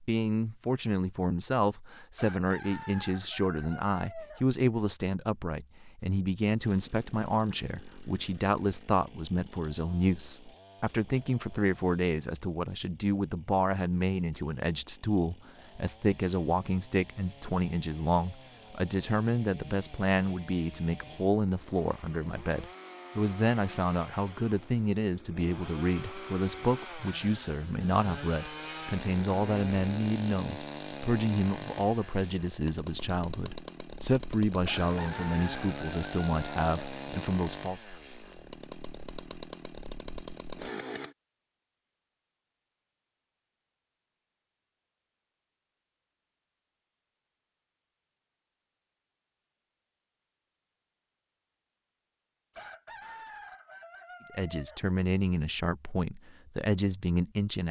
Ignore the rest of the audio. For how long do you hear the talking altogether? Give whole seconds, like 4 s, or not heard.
41 s.